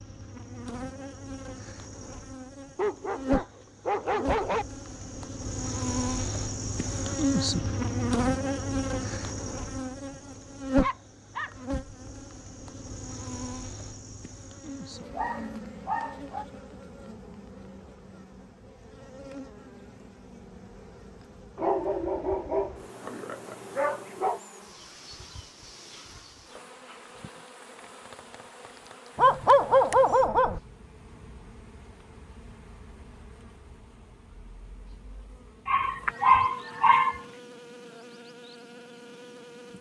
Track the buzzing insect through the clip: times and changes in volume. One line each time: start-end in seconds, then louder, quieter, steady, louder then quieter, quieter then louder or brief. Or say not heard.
0.0-39.7 quieter.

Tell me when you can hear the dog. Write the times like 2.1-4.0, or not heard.
2.8-4.7, 10.8-11.5, 14.7-16.4, 21.6-24.4, 29.1-30.6, 35.6-37.2.